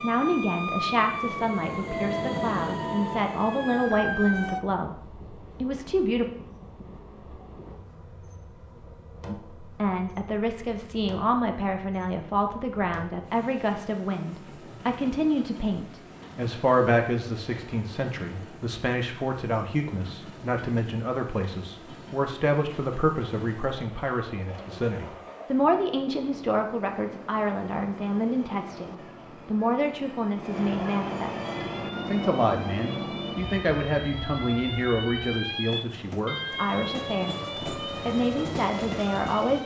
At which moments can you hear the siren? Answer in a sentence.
The siren can be heard from 0.0 to 4.6 s and from 31.4 to 39.6 s.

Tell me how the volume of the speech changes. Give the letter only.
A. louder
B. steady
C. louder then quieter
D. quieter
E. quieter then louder
B.